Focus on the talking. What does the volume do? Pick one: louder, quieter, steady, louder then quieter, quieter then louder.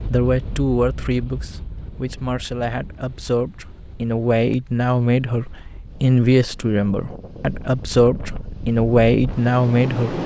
louder.